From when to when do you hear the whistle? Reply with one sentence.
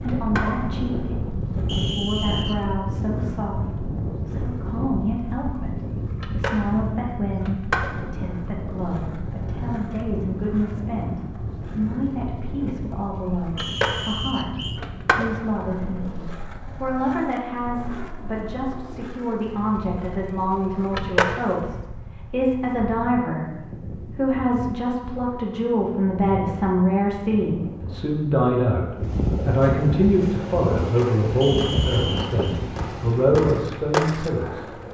The whistle can be heard from 1.6 to 2.8 s, from 13.6 to 14.8 s and from 31.4 to 32.5 s.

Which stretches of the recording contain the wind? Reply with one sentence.
You can hear the wind from 0.0 to 34.8 s.